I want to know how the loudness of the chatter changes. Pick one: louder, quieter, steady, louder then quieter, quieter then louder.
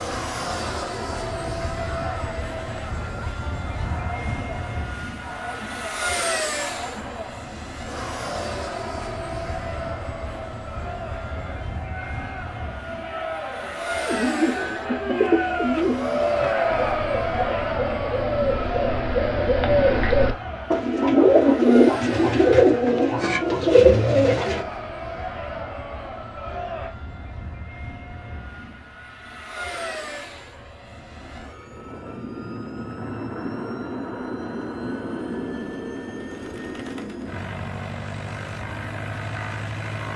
louder then quieter.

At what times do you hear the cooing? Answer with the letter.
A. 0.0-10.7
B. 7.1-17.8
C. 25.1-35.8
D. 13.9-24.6
D.